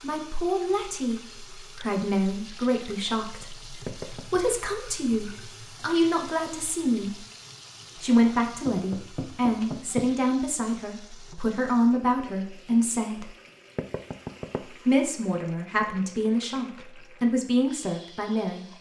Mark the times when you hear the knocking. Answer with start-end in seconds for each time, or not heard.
3.9-4.4, 8.7-10.1, 13.8-14.6.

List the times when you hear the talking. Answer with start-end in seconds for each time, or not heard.
0.0-7.2, 8.0-13.3, 14.8-18.6.